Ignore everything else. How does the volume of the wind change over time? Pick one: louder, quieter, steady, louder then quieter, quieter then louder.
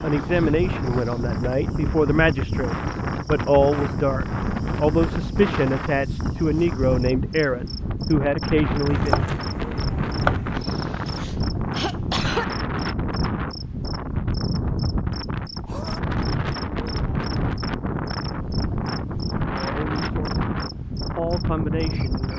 steady.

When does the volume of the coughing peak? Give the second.
12 s.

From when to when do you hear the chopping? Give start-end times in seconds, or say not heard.
8.8-10.7.